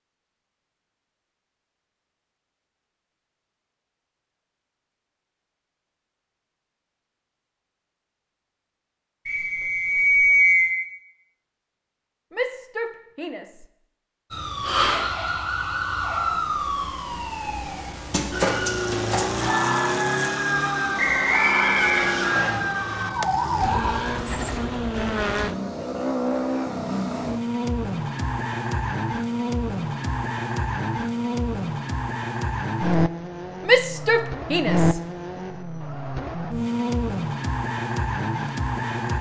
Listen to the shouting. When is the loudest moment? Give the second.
34 s.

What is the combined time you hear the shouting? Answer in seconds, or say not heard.
3 s.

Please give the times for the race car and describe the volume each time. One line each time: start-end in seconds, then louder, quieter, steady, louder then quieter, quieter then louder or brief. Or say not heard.
18.3-39.1 steady.